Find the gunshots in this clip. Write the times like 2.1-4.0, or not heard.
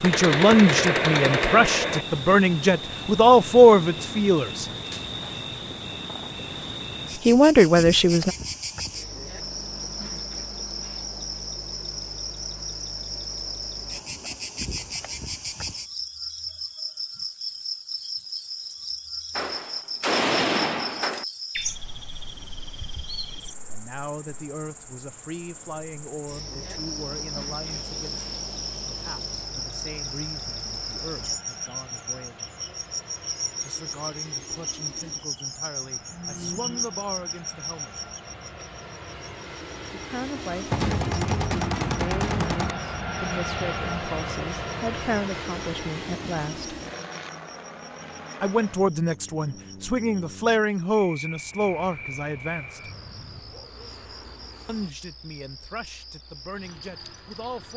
0.0-2.0, 19.4-21.2, 40.7-42.8.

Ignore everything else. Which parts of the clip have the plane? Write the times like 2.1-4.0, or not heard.
27.6-54.9.